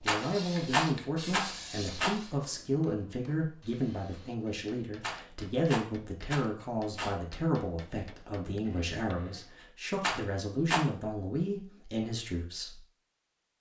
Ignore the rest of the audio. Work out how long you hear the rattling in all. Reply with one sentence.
The rattling can be heard for 5 seconds in total.